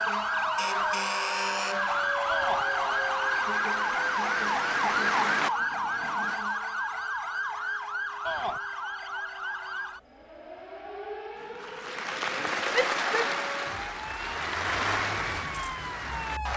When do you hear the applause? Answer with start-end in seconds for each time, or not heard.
0.1-6.4, 11.3-16.5.